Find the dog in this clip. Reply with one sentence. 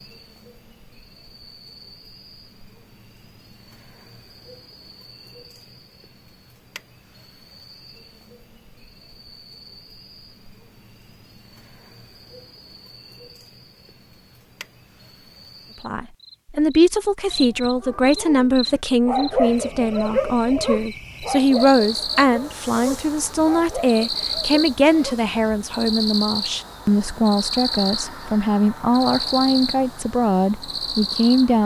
You can hear the dog from 17.8 to 25.2 s.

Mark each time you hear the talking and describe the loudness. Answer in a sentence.
You can hear the talking from 15.8 to 31.6 s, at a steady volume.